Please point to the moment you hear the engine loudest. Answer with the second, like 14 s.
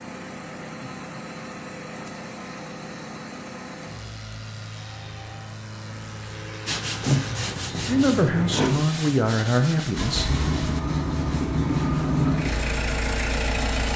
12 s.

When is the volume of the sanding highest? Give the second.
7 s.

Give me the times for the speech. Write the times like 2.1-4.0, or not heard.
7.8-10.3.